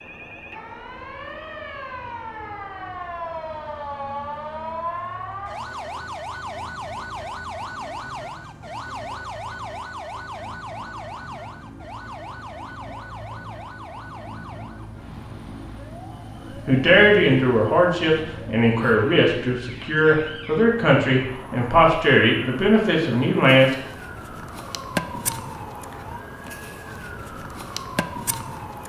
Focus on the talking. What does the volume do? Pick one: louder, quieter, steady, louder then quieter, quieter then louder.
steady.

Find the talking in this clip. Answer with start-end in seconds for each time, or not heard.
16.6-23.8.